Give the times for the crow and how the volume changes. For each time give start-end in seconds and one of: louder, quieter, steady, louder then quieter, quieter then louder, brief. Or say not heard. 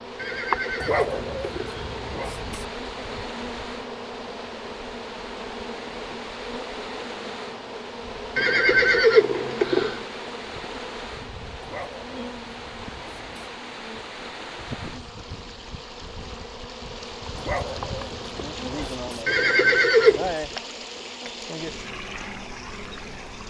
not heard.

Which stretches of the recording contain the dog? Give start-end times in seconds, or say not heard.
0.8-2.6, 11.6-13.5, 17.4-19.2.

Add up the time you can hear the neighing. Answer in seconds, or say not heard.
4 s.